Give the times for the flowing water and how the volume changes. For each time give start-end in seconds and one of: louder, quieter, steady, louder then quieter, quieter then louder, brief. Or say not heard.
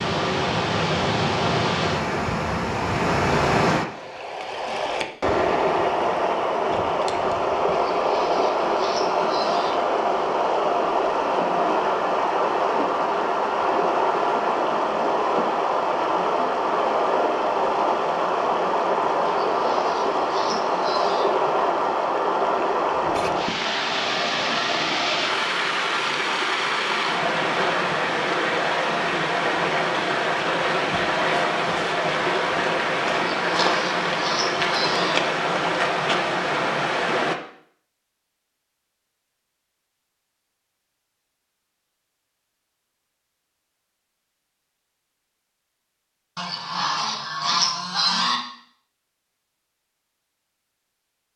0.0-37.4 steady.